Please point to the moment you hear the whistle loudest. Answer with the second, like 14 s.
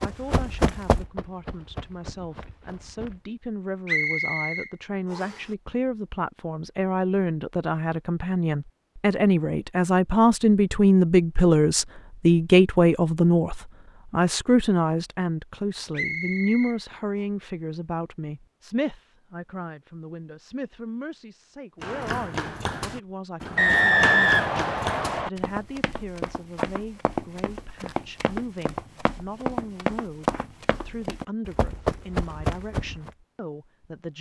24 s.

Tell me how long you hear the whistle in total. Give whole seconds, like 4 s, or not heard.
4 s.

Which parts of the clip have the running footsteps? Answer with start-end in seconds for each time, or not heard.
0.0-3.2, 21.8-33.1.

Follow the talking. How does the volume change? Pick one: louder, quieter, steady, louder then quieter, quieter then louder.
louder then quieter.